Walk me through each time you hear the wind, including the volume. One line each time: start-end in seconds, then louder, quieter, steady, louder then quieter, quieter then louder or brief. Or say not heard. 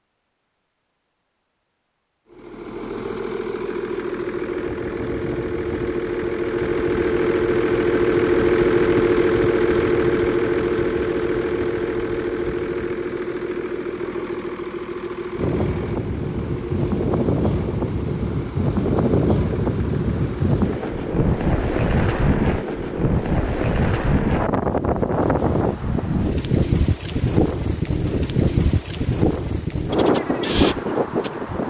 15.3-31.6 steady.